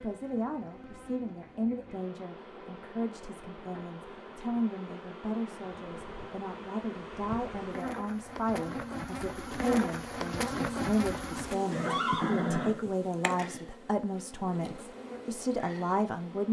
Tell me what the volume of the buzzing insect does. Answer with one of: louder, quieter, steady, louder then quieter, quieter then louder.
louder then quieter.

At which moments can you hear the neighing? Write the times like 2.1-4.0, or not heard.
11.7-12.8.